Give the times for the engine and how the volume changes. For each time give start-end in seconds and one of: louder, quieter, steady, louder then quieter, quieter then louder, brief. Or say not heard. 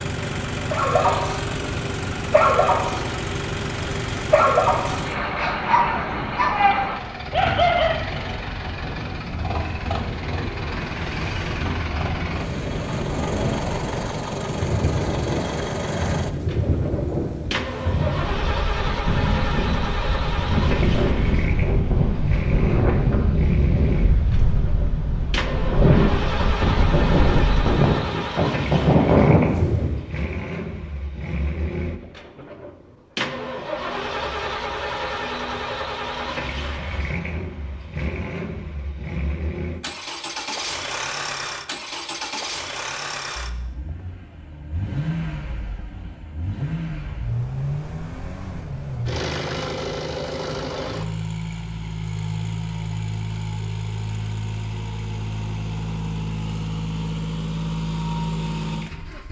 0.0-59.2 steady.